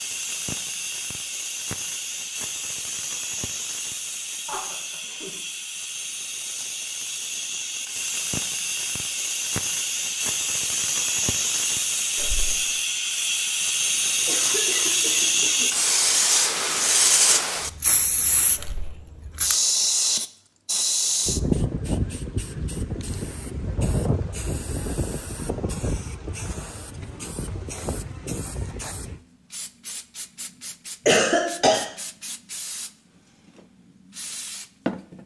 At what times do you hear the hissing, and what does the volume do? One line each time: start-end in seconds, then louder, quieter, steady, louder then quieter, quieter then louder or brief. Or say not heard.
0.0-35.2 louder then quieter.